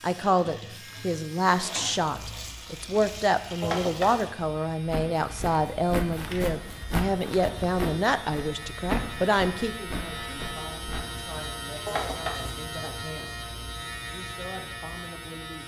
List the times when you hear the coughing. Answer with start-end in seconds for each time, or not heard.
3.6-4.2, 11.8-12.6.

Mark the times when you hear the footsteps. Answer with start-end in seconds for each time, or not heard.
4.8-11.2.